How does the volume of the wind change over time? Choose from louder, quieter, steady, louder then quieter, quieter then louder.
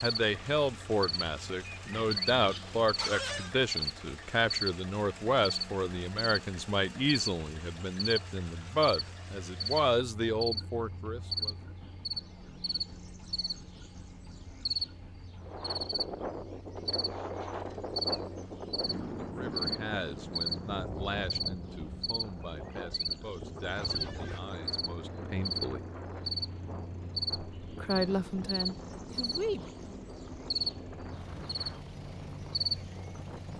quieter.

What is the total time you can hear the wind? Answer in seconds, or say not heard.
18 s.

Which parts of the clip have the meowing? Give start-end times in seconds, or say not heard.
not heard.